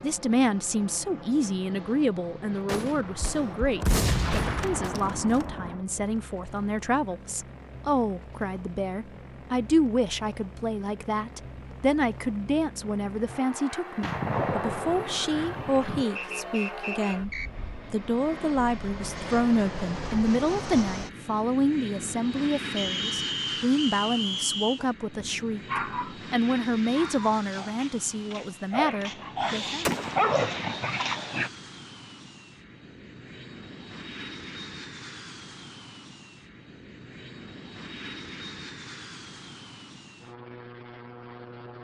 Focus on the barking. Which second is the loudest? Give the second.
30 s.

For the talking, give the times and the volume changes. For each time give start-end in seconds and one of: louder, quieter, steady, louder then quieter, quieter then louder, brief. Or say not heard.
0.0-29.9 steady.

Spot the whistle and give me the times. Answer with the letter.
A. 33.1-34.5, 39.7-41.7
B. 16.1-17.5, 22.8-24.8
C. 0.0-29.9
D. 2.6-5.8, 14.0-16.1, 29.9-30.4
B.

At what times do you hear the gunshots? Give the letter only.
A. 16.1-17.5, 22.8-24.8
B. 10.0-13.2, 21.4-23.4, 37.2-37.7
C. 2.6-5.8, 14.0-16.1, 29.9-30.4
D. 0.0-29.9
C.